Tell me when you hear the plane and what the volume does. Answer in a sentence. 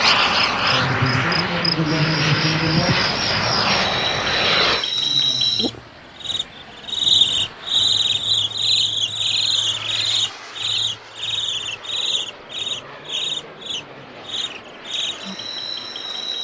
You can hear the plane from 0.0 to 16.3 s, getting quieter.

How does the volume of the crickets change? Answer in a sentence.
The loudness of the crickets goes up, then down.